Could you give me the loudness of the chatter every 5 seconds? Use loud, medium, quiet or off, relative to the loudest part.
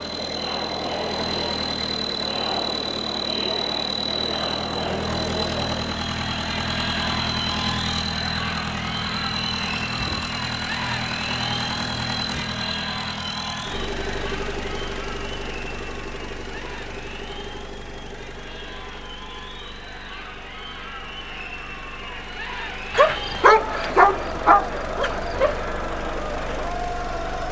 loud, loud, loud, medium, loud, loud.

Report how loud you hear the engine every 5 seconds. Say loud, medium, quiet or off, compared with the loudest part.
loud, loud, loud, medium, quiet, medium.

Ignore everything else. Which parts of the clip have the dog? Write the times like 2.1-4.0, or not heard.
22.9-25.6.